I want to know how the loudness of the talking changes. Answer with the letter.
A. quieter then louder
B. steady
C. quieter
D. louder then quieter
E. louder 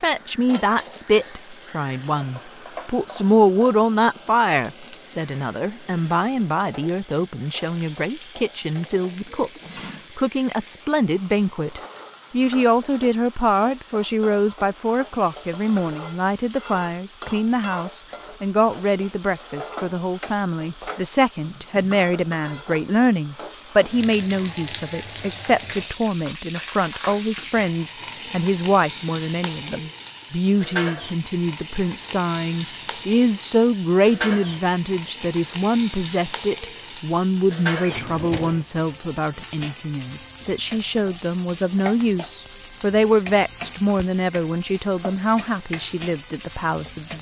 B.